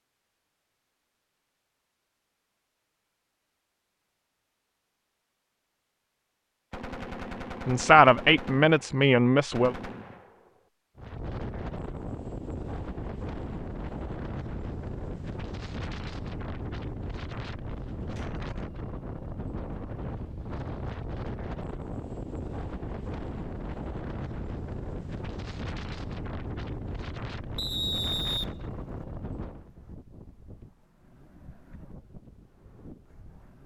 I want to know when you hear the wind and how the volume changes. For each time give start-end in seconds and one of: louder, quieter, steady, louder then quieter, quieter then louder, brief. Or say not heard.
10.9-33.6 quieter.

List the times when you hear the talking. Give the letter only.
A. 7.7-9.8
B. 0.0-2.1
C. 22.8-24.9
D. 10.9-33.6
A.